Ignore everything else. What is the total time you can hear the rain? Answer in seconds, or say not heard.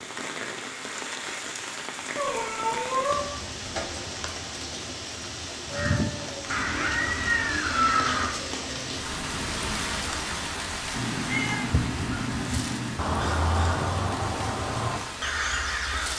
16 s.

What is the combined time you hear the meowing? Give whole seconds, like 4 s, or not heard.
5 s.